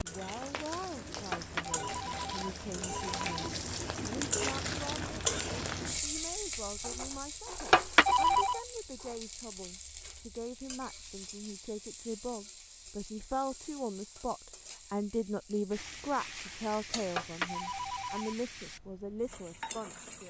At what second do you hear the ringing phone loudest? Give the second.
8 s.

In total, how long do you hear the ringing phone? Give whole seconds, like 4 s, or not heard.
4 s.